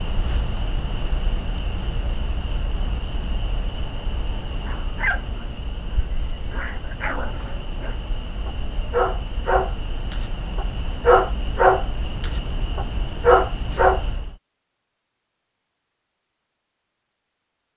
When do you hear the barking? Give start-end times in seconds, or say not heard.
4.6-14.0.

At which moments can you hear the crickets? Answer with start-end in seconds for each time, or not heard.
0.0-14.4.